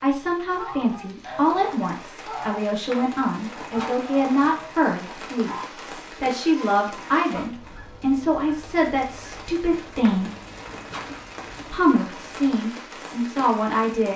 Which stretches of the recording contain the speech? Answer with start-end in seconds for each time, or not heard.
0.0-5.5, 6.2-10.3, 11.7-14.1.